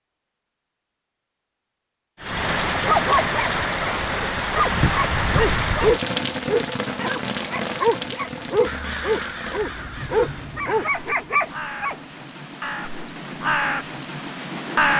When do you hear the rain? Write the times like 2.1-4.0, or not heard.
2.2-14.9.